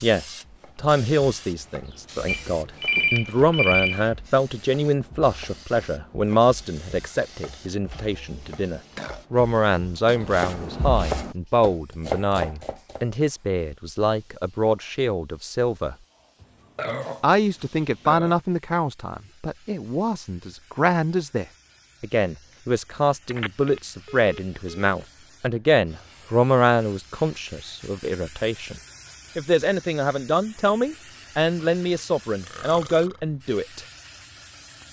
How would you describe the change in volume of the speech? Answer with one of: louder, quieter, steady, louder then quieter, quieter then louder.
steady.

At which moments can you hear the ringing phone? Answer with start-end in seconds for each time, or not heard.
2.2-4.1, 23.3-24.9.